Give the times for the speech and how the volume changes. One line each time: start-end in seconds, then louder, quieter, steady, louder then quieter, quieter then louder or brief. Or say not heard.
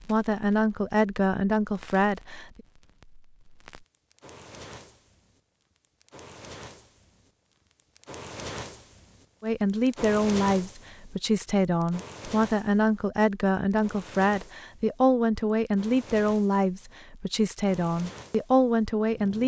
0.0-2.5 brief
9.4-19.4 steady.